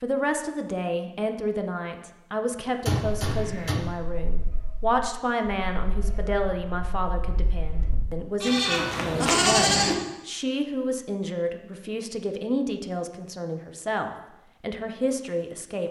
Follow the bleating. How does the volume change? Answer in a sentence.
The loudness of the bleating goes up.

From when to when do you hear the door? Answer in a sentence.
The door can be heard from 2.9 to 3.8 s.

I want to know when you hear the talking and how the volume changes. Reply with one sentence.
You can hear the talking from 0.0 to 15.8 s, at a steady volume.